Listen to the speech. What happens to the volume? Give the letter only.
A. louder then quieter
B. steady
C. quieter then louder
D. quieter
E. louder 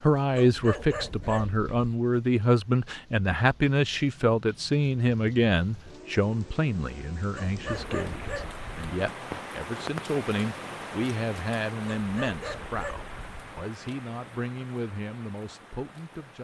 D.